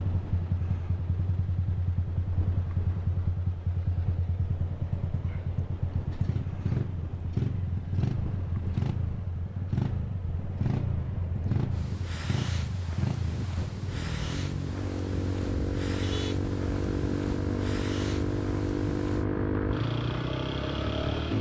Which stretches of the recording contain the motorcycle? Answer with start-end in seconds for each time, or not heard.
0.0-21.3.